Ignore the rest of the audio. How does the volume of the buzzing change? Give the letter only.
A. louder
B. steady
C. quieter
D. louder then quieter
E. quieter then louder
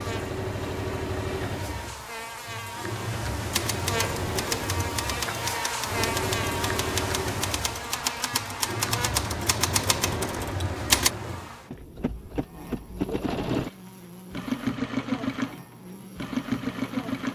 D.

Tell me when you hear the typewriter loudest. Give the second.
11 s.